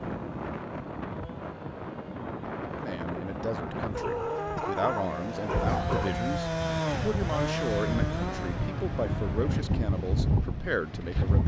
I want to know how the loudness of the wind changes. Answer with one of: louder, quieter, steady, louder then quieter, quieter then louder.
louder.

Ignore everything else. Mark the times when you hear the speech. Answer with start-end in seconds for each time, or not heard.
2.6-11.4.